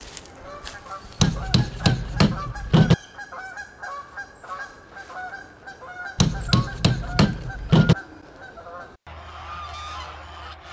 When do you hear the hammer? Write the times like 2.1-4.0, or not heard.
1.2-3.0, 6.2-8.0.